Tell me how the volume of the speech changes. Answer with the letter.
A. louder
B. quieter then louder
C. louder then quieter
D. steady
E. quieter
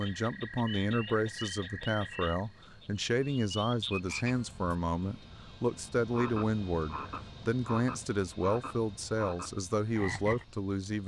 D.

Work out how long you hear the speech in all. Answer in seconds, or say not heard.
11 s.